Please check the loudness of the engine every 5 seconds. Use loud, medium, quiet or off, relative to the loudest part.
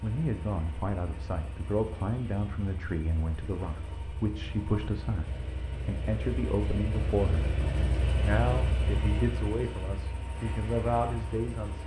medium, loud, medium.